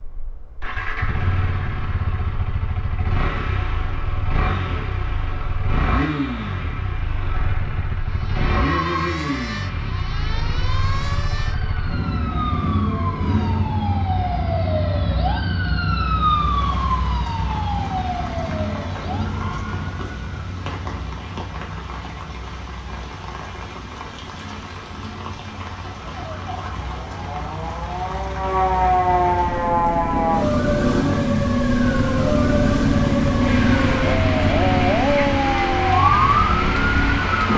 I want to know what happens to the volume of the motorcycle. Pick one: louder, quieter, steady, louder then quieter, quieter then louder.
quieter then louder.